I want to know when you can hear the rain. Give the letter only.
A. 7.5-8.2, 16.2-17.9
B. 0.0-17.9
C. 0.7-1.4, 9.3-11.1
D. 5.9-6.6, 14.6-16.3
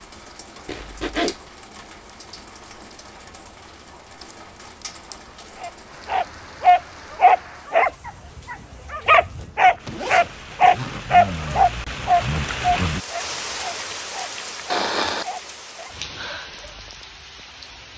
B.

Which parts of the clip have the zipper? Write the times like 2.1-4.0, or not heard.
0.7-1.4, 9.3-11.1.